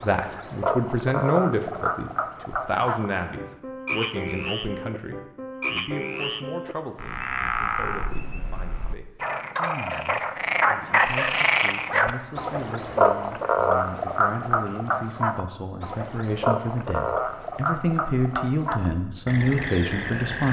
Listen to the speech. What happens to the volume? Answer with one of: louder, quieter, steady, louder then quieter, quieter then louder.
quieter then louder.